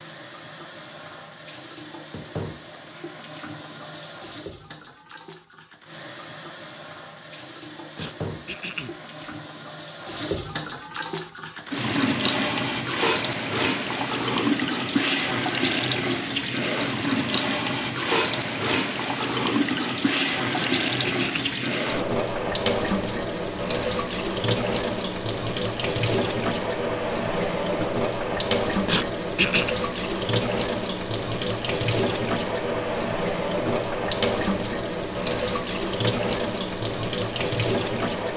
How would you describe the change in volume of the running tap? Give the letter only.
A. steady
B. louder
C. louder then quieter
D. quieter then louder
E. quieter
B.